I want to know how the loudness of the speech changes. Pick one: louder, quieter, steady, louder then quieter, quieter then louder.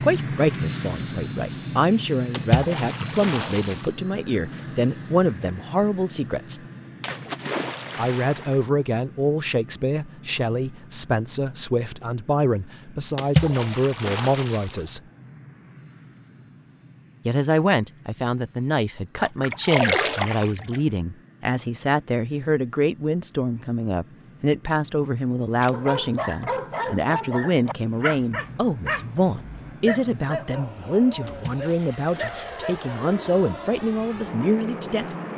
steady.